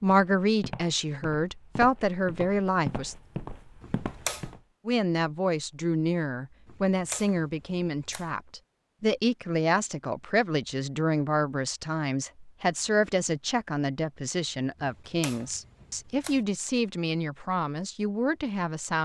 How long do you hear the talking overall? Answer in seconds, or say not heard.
17 s.